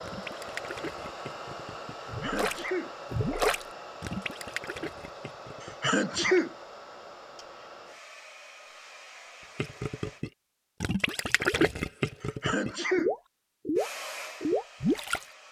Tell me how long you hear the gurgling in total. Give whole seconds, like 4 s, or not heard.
12 s.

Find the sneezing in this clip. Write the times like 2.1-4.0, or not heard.
2.0-2.9, 5.6-6.5, 12.2-13.1.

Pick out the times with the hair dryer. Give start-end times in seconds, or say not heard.
0.0-10.2, 13.8-15.4.